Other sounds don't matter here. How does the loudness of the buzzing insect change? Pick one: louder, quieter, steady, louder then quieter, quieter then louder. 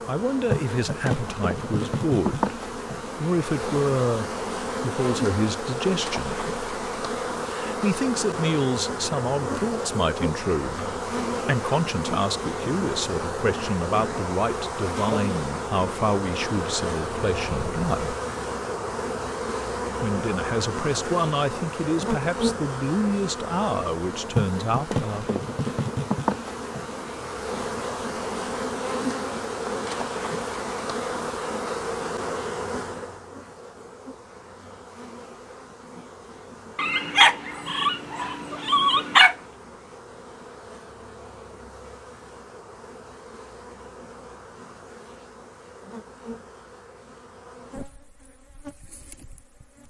quieter.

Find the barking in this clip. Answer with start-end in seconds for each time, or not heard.
36.8-39.4.